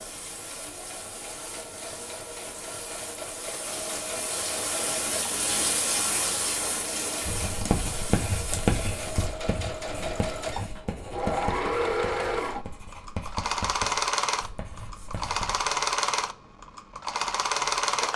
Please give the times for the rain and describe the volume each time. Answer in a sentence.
You can hear the rain from 0.0 to 9.2 s, getting louder then quieter.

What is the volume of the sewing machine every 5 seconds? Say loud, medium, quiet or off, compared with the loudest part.
quiet, medium, loud, loud.